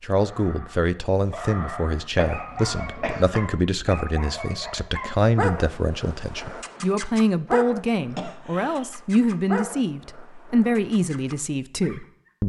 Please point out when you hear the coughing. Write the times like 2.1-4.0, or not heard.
2.1-3.5, 8.1-8.8.